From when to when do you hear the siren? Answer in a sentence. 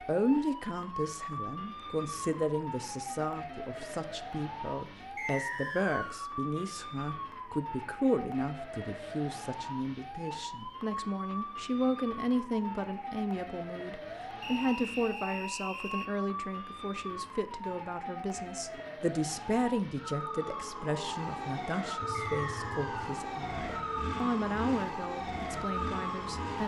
You can hear the siren from 0.0 to 26.6 s.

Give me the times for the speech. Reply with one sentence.
The speech can be heard from 0.0 to 26.6 s.